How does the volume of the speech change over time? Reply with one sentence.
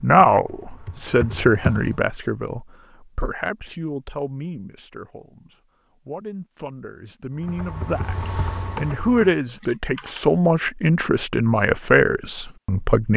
The loudness of the speech goes down, then up.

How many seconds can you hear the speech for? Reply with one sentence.
The speech can be heard for 13 seconds in total.